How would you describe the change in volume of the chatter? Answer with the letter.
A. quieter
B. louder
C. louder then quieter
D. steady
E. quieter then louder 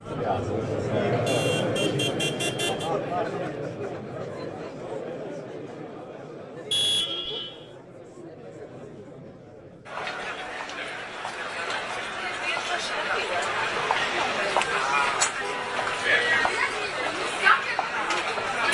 E.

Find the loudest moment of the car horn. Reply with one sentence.
The volume of the car horn peaks at 7 seconds.